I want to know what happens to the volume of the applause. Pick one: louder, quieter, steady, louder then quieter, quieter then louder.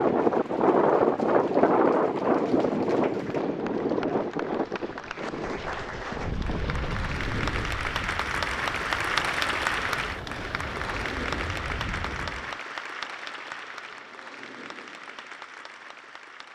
louder then quieter.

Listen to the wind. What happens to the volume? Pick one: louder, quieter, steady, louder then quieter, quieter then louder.
quieter.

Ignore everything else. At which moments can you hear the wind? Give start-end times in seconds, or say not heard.
0.0-12.6.